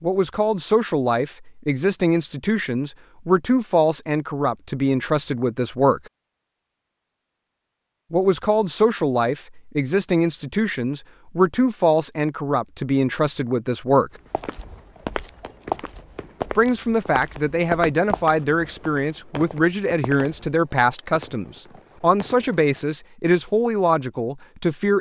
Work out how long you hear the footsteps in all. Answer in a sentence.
You can hear the footsteps for 6 seconds altogether.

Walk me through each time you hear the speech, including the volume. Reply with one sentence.
You can hear the speech from 0.0 to 6.0 s, at a steady volume; from 8.1 to 14.1 s, at a steady volume; and from 16.6 to 24.9 s, at a steady volume.